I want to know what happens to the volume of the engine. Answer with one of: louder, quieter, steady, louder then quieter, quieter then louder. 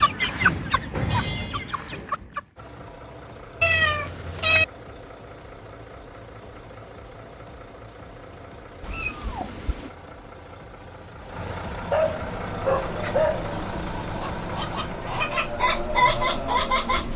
louder.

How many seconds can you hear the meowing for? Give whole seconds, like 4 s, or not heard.
2 s.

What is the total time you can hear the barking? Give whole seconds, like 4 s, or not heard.
2 s.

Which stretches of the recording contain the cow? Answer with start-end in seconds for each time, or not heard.
not heard.